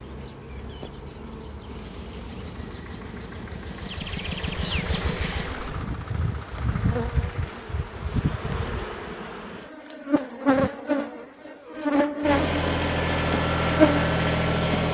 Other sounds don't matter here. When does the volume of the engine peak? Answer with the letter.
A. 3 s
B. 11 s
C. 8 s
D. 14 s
D.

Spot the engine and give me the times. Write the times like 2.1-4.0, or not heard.
1.6-7.7, 12.2-14.8.